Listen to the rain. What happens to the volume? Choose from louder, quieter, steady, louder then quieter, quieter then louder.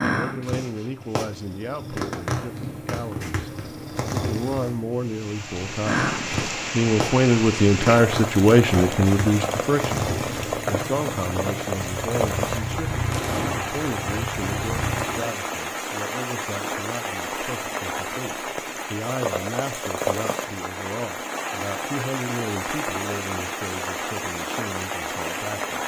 steady.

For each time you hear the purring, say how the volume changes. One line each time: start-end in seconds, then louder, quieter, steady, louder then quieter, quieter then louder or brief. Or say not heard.
0.0-15.3 steady.